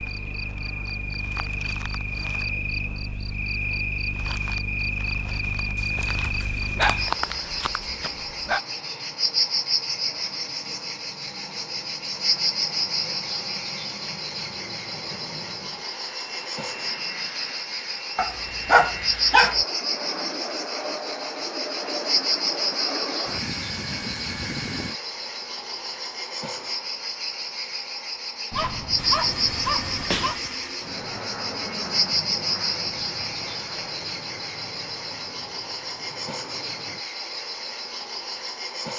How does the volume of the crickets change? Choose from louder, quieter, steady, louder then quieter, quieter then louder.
steady.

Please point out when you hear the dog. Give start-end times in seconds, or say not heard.
5.8-8.6, 18.1-19.6, 28.5-30.4.